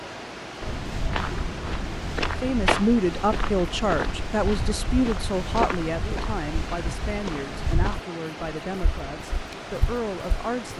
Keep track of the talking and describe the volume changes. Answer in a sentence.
The loudness of the talking goes down.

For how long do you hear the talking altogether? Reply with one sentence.
The talking can be heard for 8 seconds in total.